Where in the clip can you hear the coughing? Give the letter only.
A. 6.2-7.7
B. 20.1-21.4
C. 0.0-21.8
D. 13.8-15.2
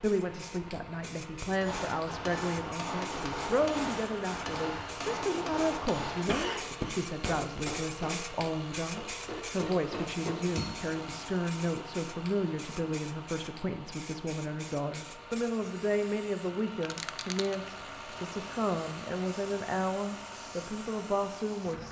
A.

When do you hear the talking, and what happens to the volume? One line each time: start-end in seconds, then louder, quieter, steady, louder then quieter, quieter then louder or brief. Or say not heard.
0.0-21.8 steady.